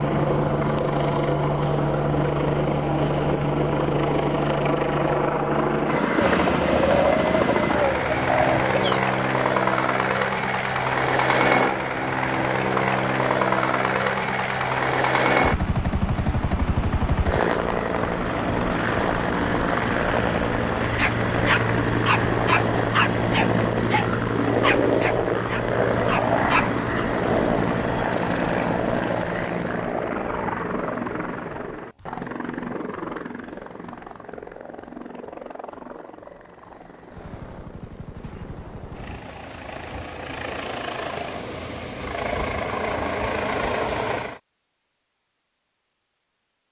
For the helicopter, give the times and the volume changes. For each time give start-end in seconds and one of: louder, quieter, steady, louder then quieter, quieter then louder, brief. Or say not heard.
0.0-44.4 quieter.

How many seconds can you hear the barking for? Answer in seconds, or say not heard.
6 s.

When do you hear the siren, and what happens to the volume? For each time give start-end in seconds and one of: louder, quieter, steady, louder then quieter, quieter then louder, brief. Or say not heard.
not heard.